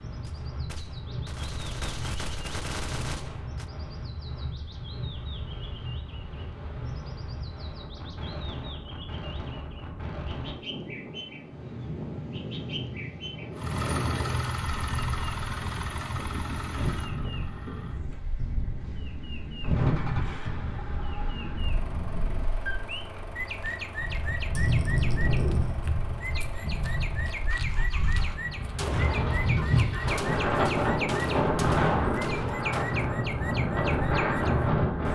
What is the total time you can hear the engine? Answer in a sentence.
The engine can be heard for 17 seconds in total.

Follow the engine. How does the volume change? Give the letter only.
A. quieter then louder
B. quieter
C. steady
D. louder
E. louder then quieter
B.